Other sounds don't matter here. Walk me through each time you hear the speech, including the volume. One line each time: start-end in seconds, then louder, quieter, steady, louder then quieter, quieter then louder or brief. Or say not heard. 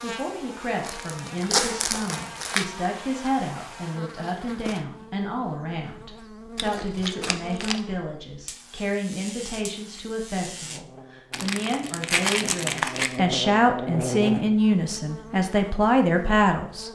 0.0-16.9 louder.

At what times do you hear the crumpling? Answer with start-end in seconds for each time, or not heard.
0.8-2.6, 6.5-7.8, 11.3-13.2.